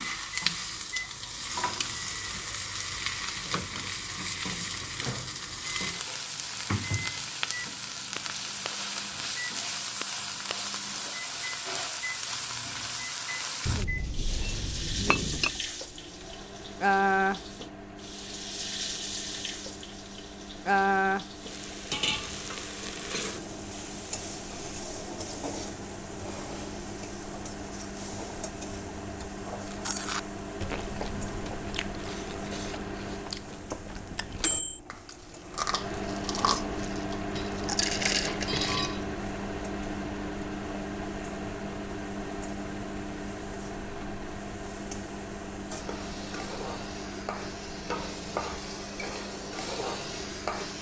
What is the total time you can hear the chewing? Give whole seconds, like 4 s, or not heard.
9 s.